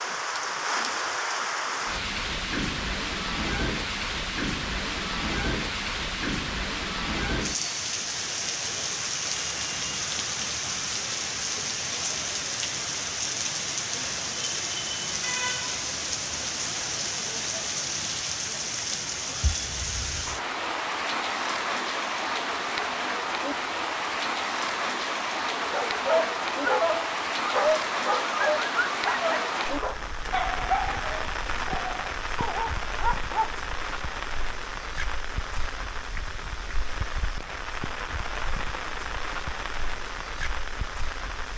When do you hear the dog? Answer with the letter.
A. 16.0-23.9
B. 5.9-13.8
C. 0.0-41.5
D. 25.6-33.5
D.